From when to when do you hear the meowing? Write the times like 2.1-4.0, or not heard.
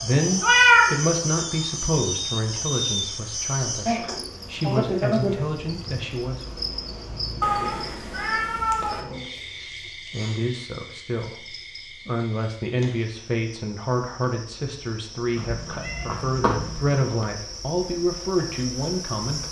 0.4-0.9, 7.4-9.1, 15.3-16.9.